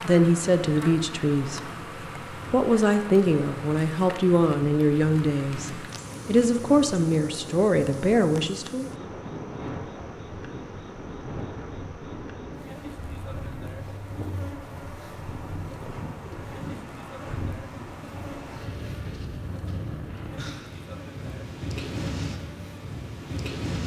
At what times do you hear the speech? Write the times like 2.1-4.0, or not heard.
0.0-1.6, 2.5-8.9.